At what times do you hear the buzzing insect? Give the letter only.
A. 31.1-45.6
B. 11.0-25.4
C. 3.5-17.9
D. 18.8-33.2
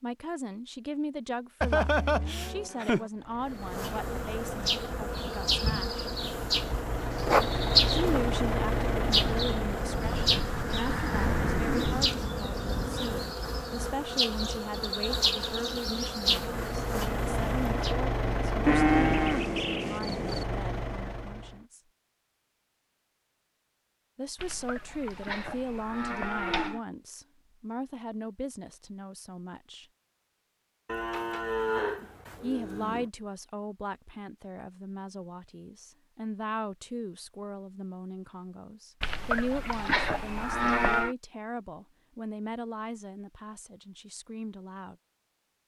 C.